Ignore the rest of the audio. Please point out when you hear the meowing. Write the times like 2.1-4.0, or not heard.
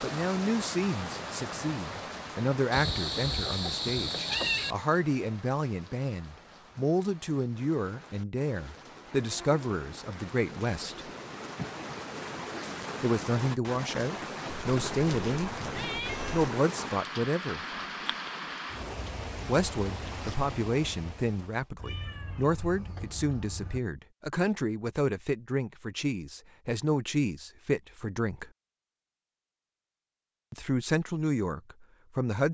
2.7-4.8, 14.6-16.5, 21.8-23.8.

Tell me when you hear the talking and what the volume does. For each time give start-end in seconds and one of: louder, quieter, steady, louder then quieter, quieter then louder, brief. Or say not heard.
0.0-11.1 steady
13.0-17.6 steady
19.4-28.5 steady
30.5-32.4 brief.